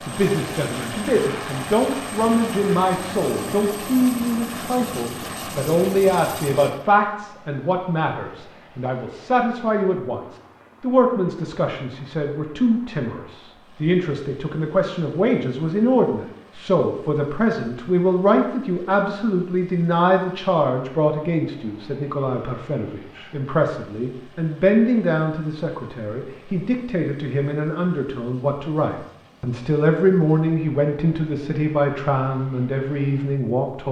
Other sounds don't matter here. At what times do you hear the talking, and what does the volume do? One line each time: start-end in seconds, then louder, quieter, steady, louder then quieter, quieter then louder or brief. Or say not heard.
0.1-33.8 steady.